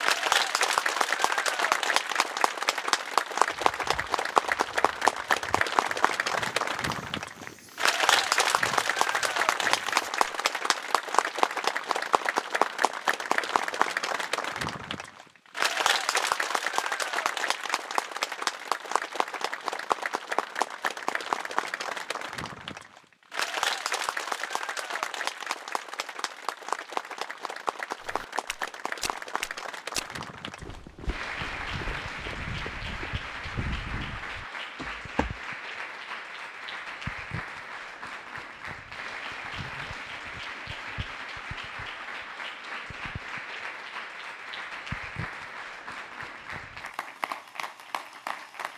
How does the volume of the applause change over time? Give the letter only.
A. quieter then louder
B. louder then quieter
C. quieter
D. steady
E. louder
C.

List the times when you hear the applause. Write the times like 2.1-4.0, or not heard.
0.0-48.7.